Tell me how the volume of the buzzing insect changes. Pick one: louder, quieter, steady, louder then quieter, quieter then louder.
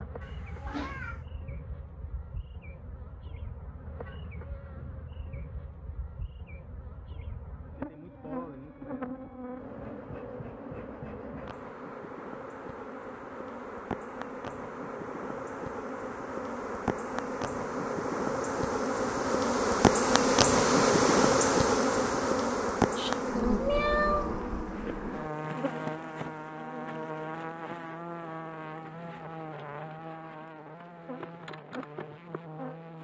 louder then quieter.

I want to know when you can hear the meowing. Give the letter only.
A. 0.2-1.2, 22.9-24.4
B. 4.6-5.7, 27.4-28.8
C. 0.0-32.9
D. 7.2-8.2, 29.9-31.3
A.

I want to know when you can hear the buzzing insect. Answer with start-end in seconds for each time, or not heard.
0.0-32.9.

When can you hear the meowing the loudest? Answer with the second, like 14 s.
24 s.